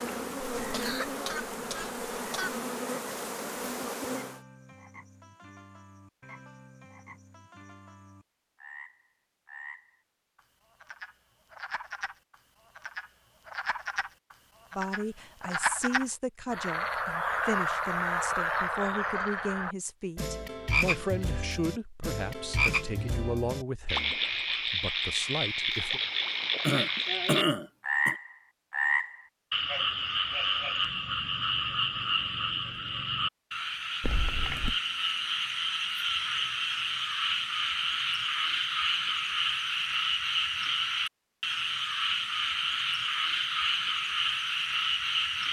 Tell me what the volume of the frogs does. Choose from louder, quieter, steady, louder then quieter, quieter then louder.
louder.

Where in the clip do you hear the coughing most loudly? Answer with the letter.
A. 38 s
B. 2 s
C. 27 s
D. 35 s
C.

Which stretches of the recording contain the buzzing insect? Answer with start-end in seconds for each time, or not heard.
0.0-4.4.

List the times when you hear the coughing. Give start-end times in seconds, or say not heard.
0.6-2.5, 26.6-28.1, 34.0-34.8.